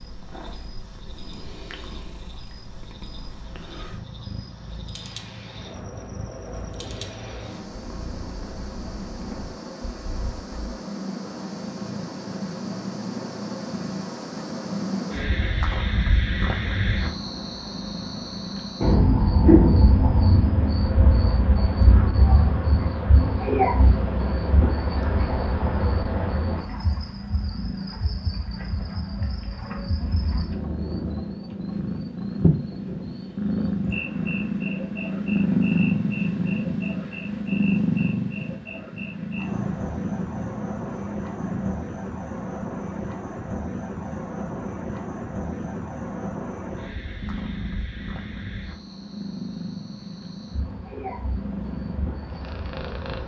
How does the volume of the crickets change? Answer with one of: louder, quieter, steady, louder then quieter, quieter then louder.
louder then quieter.